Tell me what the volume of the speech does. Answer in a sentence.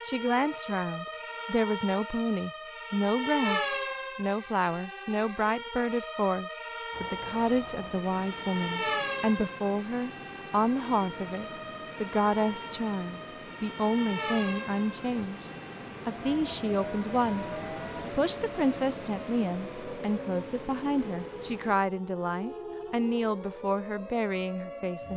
The volume of the speech stays about the same.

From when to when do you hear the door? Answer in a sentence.
The door can't be heard in this clip.